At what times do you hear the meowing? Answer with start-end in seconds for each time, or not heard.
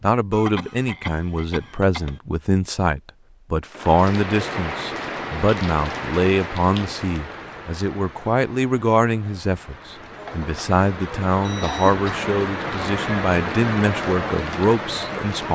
not heard.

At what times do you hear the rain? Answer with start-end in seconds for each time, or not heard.
3.6-15.5.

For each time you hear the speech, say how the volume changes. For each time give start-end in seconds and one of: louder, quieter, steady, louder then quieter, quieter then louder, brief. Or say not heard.
0.0-15.5 steady.